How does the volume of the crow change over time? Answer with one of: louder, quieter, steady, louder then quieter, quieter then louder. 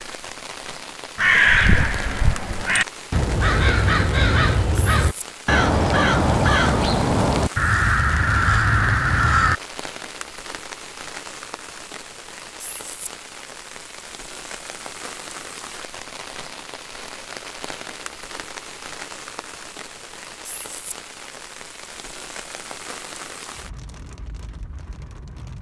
steady.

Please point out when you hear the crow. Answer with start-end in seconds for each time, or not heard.
1.1-9.6.